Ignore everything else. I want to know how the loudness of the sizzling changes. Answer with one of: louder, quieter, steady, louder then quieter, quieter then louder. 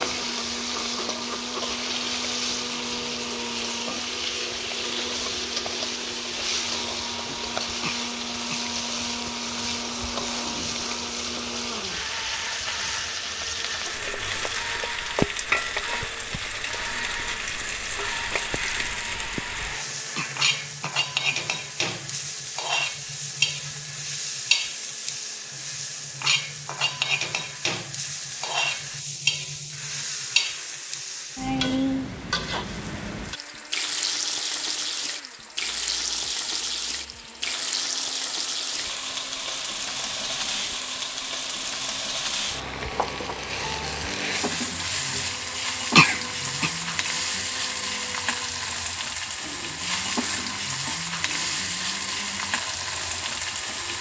steady.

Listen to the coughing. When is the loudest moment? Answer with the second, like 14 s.
46 s.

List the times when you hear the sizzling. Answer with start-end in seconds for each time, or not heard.
0.0-53.9.